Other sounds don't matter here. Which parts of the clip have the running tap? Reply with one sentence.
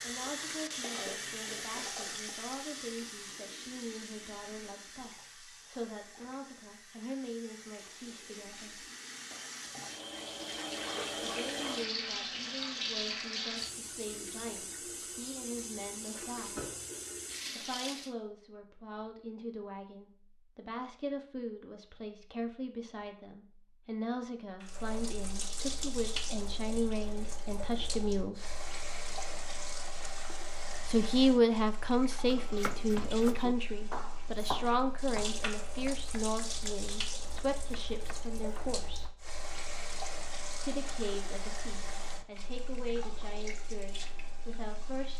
You can hear the running tap from 0.0 to 18.1 s and from 24.6 to 45.1 s.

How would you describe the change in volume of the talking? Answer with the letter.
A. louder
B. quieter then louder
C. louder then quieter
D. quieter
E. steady
C.